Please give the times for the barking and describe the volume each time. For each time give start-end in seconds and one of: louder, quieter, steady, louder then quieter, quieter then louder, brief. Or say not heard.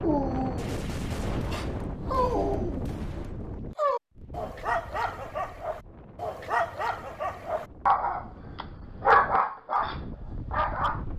0.0-11.1 louder.